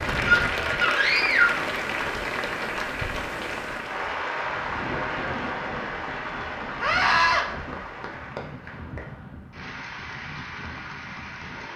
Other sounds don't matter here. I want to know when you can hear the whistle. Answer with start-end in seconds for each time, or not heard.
not heard.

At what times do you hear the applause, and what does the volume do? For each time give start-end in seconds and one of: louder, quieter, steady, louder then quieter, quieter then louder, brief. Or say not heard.
0.0-11.7 quieter.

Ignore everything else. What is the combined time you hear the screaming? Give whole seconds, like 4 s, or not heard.
2 s.